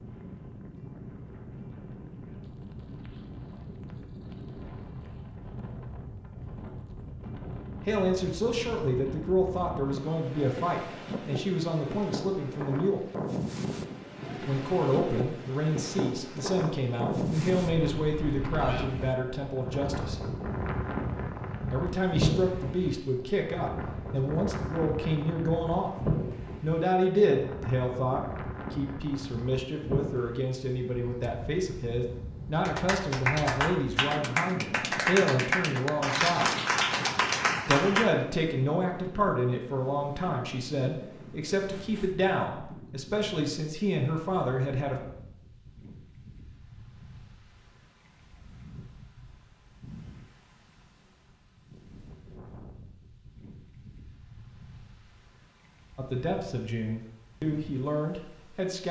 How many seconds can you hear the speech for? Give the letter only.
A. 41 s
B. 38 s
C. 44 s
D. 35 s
D.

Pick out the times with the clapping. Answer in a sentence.
The clapping can be heard from 32.6 to 38.1 s.